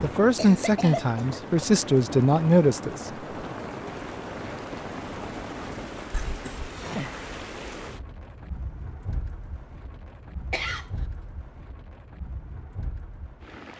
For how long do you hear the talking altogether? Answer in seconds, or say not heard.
3 s.